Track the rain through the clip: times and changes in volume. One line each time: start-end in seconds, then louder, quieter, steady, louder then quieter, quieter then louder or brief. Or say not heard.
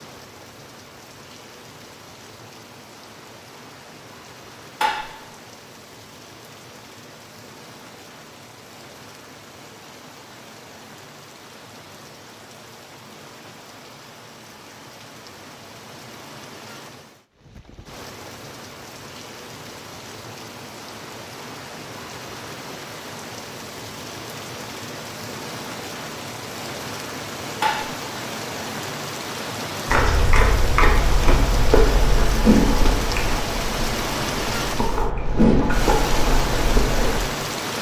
0.0-37.7 louder.